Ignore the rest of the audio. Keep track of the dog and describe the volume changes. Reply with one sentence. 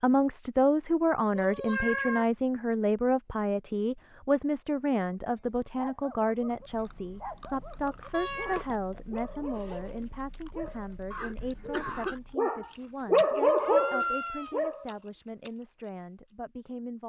The loudness of the dog goes up.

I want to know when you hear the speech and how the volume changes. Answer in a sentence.
You can hear the speech from 0.0 to 17.0 s, getting quieter.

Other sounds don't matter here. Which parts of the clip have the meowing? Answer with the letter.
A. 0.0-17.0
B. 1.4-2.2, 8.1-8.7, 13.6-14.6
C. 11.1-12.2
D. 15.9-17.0
B.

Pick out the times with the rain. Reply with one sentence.
You can't hear the rain here.